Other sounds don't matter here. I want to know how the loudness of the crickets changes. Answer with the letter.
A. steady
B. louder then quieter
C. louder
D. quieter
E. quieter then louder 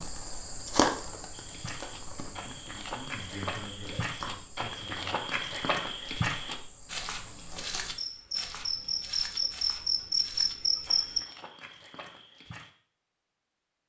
E.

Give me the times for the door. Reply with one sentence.
The door can't be heard in this clip.